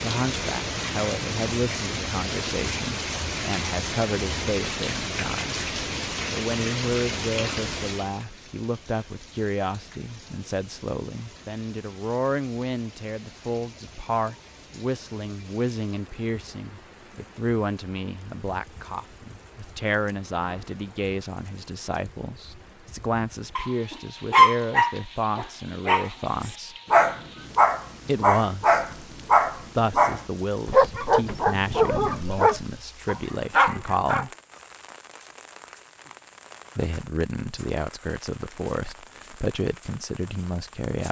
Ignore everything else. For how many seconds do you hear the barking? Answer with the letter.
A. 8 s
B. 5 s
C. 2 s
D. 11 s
D.